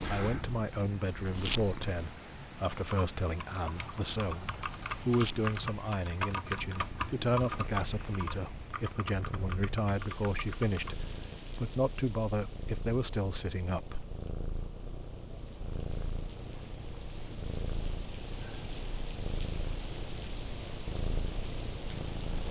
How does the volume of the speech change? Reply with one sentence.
The loudness of the speech stays about the same.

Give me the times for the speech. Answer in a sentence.
The speech can be heard from 0.1 to 14.1 s.